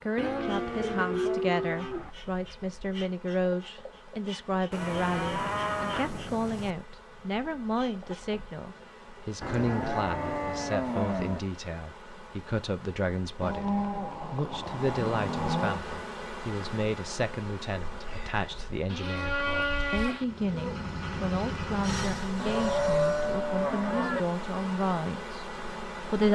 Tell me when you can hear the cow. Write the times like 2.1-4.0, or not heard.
0.1-2.1, 4.7-6.8, 9.4-11.4, 13.4-15.8, 18.9-20.2, 22.4-24.2.